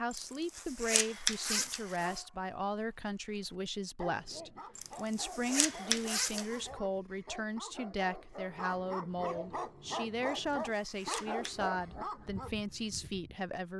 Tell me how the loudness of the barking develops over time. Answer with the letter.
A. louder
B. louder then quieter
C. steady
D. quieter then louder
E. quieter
A.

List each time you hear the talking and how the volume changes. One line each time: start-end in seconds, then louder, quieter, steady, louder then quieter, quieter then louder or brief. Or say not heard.
0.0-13.7 steady.